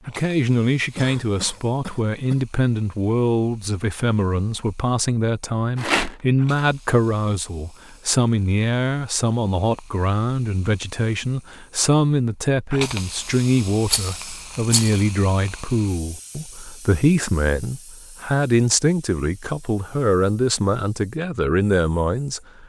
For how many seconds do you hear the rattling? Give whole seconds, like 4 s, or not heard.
2 s.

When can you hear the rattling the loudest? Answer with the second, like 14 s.
6 s.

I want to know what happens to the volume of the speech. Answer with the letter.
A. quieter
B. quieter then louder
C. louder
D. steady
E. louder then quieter
D.